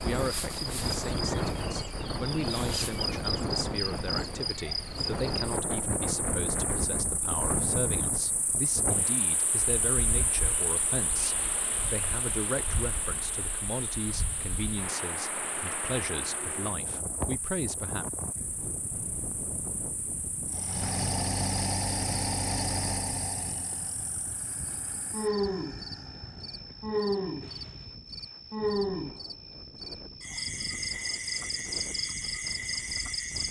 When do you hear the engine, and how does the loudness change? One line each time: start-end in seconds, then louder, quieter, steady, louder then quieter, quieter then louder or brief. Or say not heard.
20.4-27.9 quieter.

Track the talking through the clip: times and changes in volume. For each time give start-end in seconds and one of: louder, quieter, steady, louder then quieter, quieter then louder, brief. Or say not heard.
0.0-18.1 steady.